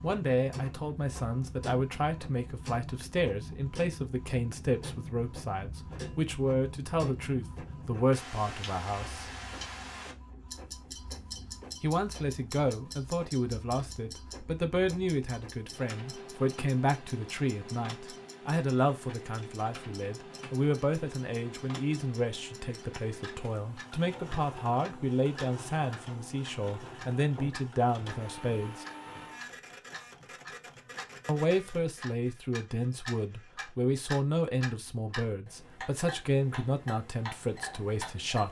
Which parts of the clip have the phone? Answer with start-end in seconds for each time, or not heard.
not heard.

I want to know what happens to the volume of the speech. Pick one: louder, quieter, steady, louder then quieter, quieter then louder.
steady.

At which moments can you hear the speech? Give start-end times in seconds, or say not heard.
0.0-9.3, 11.8-28.9, 31.2-38.4.